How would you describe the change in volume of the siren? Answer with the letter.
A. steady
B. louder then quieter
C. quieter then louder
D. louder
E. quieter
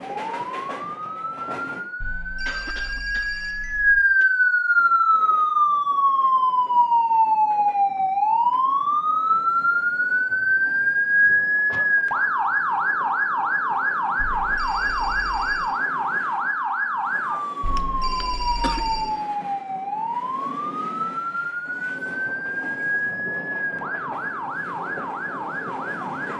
E.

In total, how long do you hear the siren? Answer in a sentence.
The siren can be heard for 26 seconds in total.